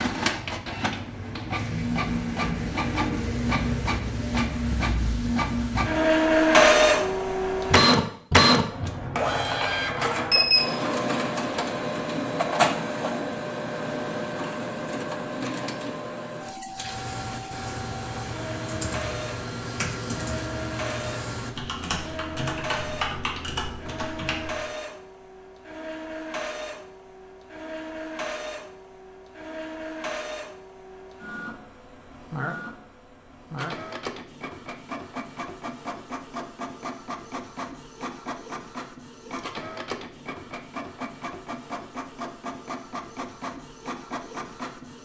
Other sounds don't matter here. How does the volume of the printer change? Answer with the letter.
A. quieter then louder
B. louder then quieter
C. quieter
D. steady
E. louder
C.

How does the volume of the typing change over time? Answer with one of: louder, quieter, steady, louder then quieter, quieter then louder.
steady.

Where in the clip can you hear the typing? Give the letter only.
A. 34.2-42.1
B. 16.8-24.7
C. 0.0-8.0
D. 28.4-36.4
B.